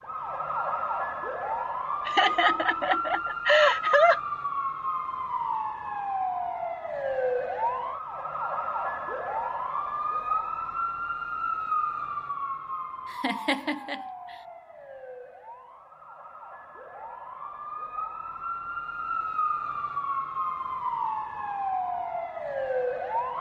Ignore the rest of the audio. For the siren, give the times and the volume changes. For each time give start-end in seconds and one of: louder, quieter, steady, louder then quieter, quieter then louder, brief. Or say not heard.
0.0-23.3 quieter then louder.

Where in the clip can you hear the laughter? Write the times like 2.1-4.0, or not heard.
2.0-4.2, 13.1-14.1.